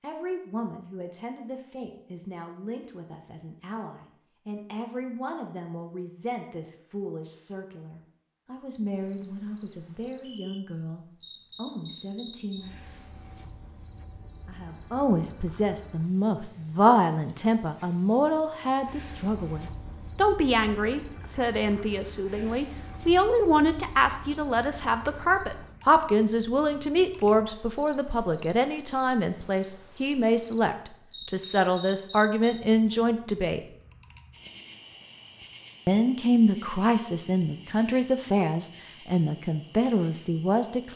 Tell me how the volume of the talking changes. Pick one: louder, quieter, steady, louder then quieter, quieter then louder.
louder.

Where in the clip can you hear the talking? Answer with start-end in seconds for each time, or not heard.
0.0-12.8, 14.4-33.6, 35.9-40.9.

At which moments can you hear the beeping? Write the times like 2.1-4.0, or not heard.
not heard.